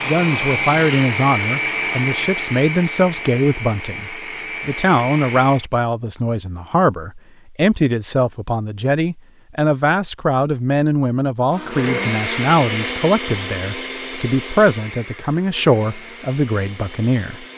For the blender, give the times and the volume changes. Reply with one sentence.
The blender can be heard from 0.0 to 5.7 s, getting quieter; and from 11.5 to 17.5 s, getting quieter.